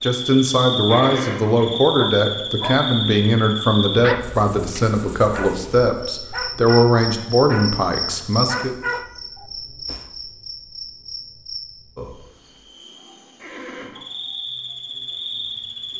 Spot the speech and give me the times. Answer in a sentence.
The speech can be heard from 0.0 to 8.8 s.